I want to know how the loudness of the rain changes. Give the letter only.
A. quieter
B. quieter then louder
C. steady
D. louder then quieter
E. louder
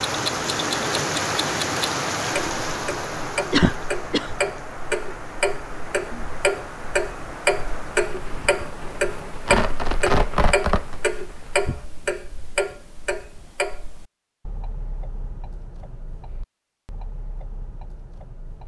A.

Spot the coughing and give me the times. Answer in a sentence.
The coughing can be heard from 3.5 to 4.3 s.